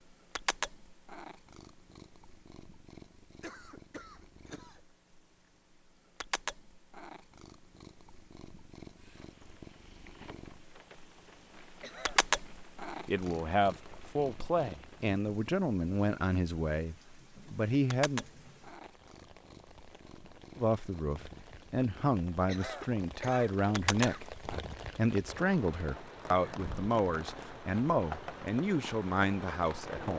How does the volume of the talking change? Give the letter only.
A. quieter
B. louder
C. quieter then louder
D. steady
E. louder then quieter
D.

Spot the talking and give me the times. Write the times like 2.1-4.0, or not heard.
13.1-18.2, 20.6-24.2, 24.9-30.1.